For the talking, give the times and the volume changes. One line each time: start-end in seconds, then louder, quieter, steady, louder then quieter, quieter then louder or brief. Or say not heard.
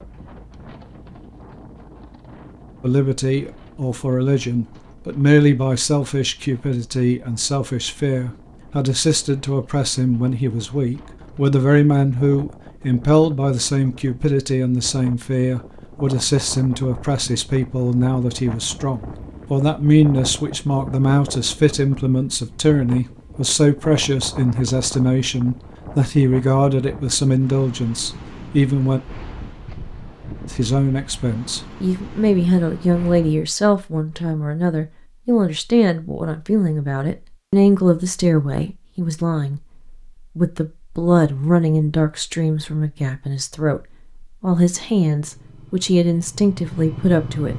2.8-29.0 steady
30.5-47.5 steady.